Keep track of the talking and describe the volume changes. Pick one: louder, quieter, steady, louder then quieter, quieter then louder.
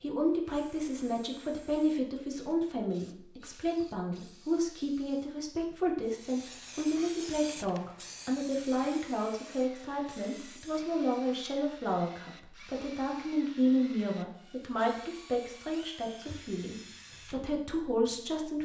steady.